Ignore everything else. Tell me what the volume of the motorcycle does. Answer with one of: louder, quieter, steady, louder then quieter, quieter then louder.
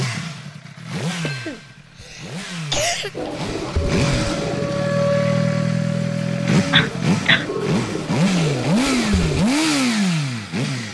louder.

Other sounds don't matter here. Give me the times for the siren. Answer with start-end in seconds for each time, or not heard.
3.8-6.9.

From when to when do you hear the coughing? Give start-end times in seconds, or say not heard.
1.2-3.1, 6.5-7.5.